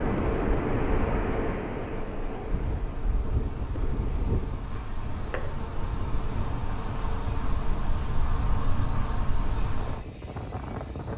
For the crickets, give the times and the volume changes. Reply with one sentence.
You can hear the crickets from 0.0 to 11.1 s, getting louder.